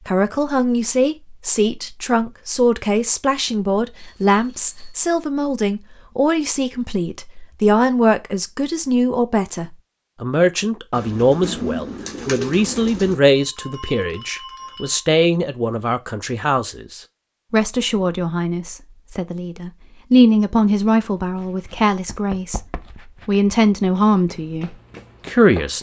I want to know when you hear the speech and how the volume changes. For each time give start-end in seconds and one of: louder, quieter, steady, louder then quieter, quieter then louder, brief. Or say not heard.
0.1-25.7 steady.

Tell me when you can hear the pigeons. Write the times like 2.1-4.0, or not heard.
10.9-13.2.